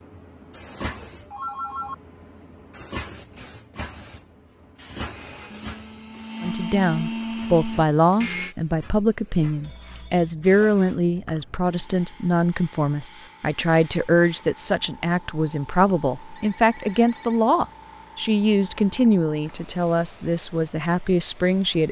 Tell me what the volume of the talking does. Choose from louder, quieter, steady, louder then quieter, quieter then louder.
steady.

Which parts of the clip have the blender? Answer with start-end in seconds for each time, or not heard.
5.0-8.6.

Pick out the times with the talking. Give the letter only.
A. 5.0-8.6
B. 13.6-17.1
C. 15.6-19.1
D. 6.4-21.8
D.